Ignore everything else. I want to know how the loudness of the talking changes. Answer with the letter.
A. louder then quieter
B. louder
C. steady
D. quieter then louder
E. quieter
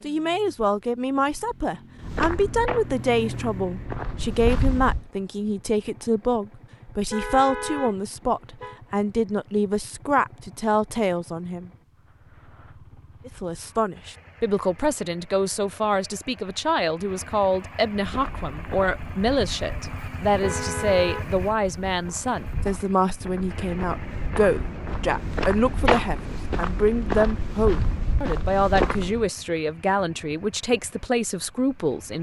C.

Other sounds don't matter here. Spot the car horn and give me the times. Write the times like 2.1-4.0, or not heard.
7.1-8.8, 20.4-21.4.